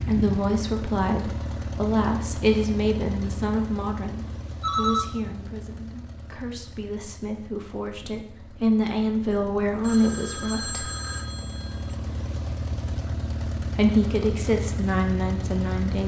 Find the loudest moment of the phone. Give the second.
5 s.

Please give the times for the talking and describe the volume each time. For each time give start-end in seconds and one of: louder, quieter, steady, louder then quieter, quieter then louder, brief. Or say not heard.
0.1-10.9 quieter then louder
13.6-16.0 brief.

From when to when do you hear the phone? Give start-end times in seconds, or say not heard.
4.6-5.1, 9.8-11.9.